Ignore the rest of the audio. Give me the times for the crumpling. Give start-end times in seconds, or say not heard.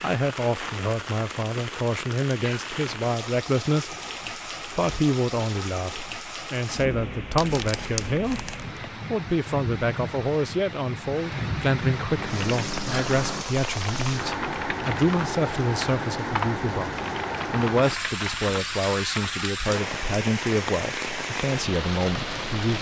7.3-8.9.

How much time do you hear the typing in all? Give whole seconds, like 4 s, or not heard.
7 s.